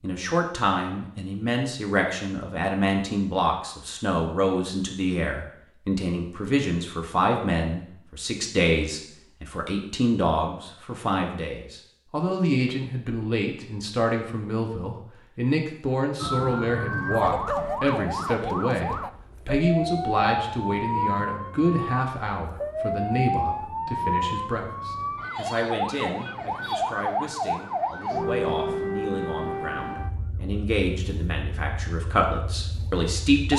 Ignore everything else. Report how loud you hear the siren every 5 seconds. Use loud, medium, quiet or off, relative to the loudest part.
off, off, off, loud, loud, loud, medium.